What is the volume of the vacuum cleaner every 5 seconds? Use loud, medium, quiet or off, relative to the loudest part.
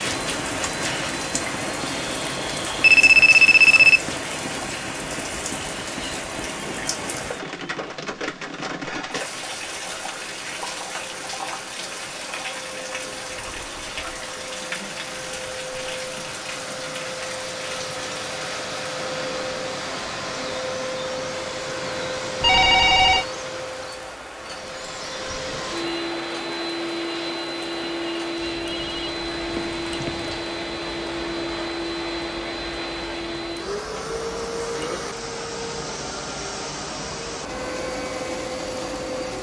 medium, quiet, medium, loud, loud, loud, loud, loud.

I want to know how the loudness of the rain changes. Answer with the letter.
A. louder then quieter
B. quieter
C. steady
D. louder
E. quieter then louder
B.